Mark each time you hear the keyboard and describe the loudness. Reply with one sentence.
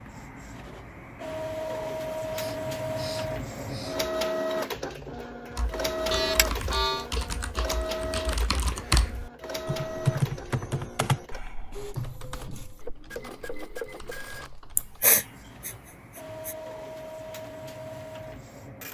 You can hear the keyboard from 5.5 to 15.1 s, getting louder then quieter.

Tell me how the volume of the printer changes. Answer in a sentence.
The loudness of the printer goes down.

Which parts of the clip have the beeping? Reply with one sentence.
You can hear the beeping from 6.1 to 7.1 s.